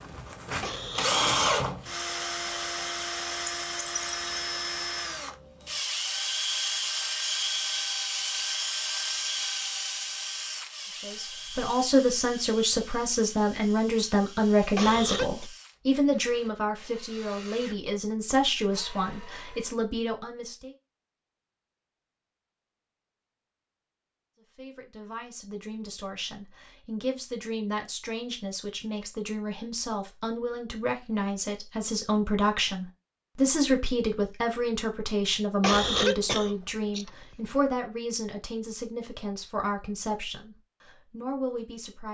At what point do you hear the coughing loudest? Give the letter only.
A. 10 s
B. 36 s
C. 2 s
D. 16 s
B.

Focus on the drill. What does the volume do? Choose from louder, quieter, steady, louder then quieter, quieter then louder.
quieter.